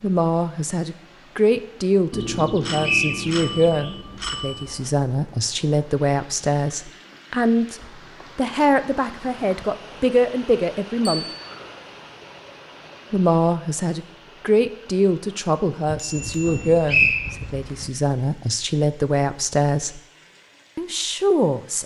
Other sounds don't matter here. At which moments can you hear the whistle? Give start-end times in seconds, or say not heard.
2.8-3.3, 16.9-17.4.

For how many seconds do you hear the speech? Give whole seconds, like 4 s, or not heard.
19 s.